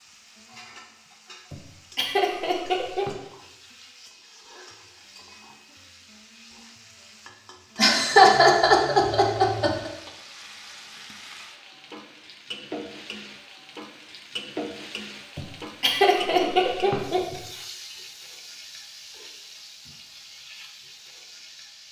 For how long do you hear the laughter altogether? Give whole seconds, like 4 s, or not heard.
6 s.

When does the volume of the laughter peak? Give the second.
8 s.